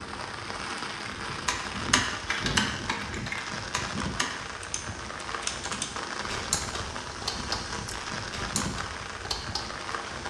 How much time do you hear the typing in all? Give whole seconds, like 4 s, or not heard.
9 s.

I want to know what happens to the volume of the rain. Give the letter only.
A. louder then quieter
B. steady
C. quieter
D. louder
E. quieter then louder
B.